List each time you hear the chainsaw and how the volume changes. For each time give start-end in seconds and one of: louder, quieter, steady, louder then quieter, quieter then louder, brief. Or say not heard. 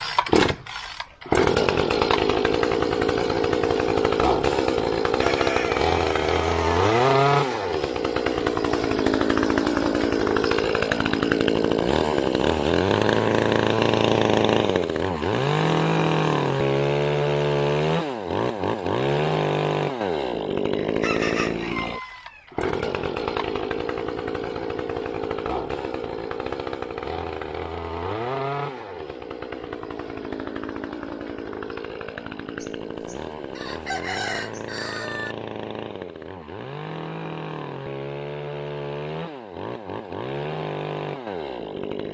0.0-42.0 quieter.